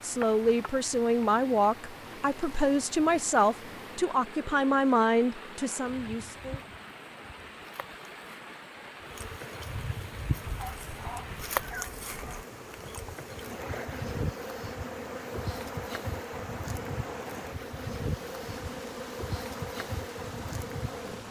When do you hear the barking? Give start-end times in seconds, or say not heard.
10.4-12.4.